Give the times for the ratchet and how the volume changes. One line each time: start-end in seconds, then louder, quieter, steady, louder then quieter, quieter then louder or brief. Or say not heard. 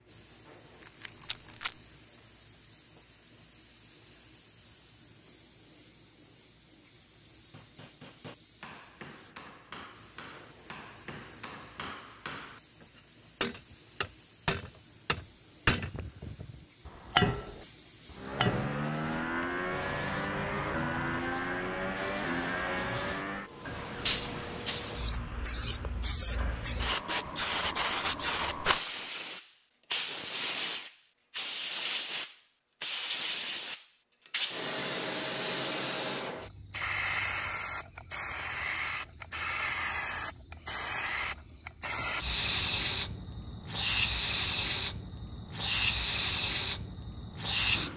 not heard.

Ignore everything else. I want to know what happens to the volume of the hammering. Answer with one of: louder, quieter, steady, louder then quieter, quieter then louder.
louder.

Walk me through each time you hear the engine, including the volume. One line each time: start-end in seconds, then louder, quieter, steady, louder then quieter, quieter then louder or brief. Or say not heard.
18.1-26.9 quieter.